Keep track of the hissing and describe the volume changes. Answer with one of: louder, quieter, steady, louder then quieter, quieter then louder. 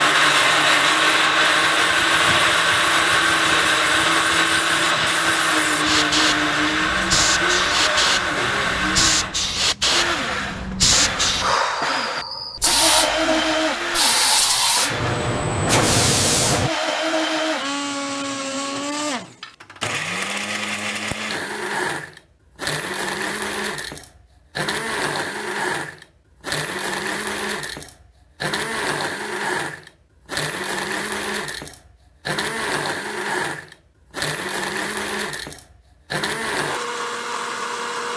louder.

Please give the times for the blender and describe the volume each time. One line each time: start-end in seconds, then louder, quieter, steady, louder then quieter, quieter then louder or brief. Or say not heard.
0.0-38.1 quieter.